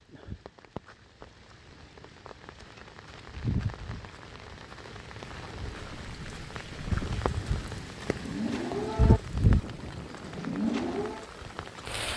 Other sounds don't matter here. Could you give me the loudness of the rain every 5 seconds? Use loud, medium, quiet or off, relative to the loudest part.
medium, loud, medium.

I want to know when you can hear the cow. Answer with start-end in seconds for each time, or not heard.
5.7-11.3.